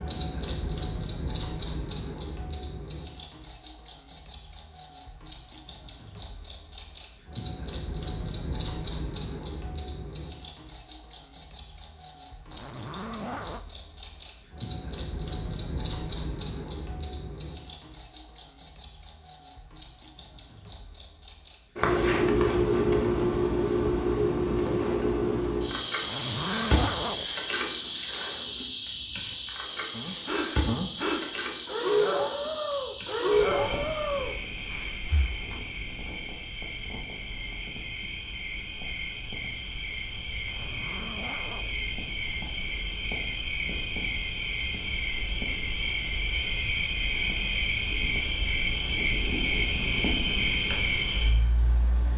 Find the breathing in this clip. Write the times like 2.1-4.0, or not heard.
29.9-35.4.